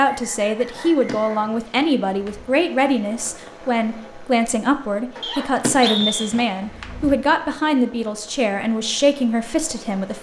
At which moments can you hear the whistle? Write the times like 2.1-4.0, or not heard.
0.0-1.2, 5.2-6.3.